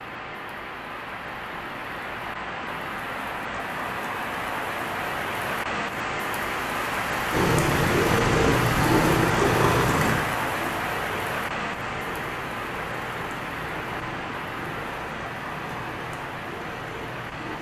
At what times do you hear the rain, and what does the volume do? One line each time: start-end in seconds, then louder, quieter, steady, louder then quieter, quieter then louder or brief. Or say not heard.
0.0-17.5 louder then quieter.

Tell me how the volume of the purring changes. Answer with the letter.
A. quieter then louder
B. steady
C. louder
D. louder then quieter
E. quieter
E.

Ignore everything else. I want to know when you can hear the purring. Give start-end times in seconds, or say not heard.
7.3-17.5.